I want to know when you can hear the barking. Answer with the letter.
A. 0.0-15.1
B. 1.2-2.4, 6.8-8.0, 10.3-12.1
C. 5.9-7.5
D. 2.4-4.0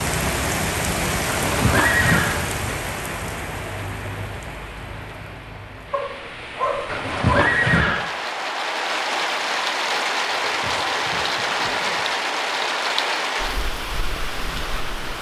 C.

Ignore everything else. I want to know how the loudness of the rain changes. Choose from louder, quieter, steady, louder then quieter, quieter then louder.
quieter then louder.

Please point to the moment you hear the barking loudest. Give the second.
7 s.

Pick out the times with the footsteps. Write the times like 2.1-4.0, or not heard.
not heard.